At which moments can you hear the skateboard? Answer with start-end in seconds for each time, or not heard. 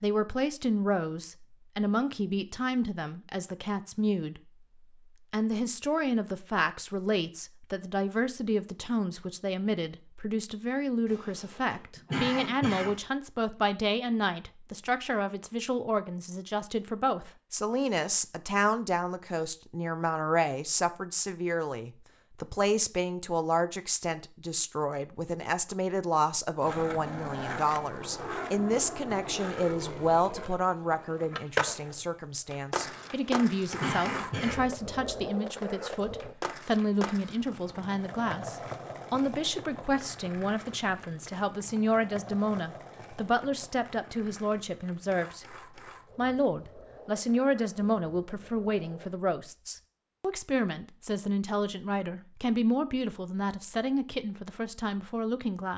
26.6-49.2.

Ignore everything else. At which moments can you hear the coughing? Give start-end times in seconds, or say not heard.
11.1-12.9, 32.9-34.5.